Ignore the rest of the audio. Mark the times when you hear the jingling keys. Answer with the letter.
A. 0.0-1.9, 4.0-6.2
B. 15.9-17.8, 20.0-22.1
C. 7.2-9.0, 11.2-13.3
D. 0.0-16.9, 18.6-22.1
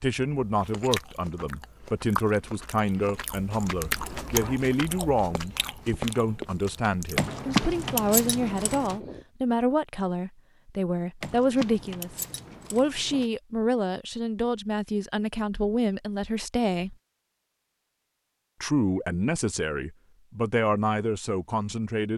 C.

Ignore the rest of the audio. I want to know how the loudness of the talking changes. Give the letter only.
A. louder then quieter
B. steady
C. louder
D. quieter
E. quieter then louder
B.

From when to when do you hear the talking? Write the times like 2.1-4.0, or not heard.
0.0-16.9, 18.6-22.1.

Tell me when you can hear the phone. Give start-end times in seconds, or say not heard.
not heard.